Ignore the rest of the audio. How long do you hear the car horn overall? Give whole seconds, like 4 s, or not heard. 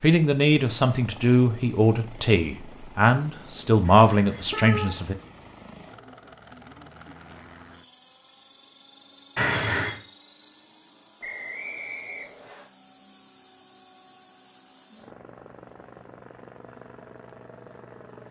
2 s.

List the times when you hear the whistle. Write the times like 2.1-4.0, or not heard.
11.2-12.7.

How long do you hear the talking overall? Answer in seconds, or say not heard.
5 s.